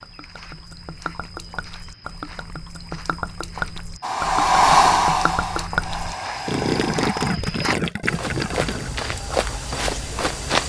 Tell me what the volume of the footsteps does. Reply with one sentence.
The volume of the footsteps goes up.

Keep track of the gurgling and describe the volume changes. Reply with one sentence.
The loudness of the gurgling goes up.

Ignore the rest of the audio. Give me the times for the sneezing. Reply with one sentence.
The sneezing can't be heard in this clip.